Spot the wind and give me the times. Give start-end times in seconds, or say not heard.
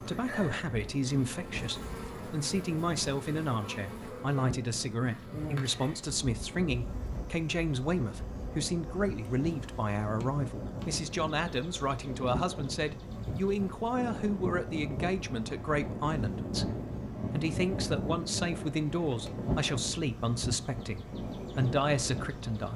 0.0-22.7.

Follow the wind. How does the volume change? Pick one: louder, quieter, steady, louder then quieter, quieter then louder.
louder.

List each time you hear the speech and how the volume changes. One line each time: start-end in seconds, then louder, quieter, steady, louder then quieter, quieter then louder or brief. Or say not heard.
0.0-22.7 steady.